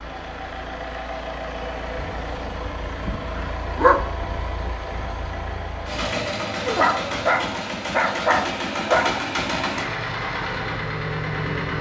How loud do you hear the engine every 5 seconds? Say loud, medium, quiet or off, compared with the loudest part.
medium, loud, loud.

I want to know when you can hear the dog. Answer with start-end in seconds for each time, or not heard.
1.9-4.1, 6.7-9.2.